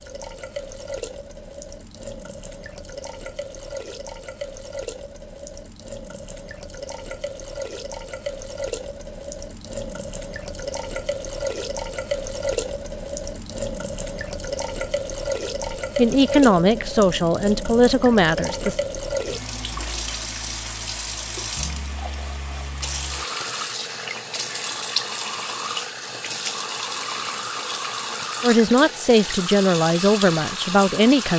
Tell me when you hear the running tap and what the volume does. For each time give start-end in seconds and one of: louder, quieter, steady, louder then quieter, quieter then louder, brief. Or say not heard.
0.0-31.3 louder.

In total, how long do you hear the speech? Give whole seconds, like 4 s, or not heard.
6 s.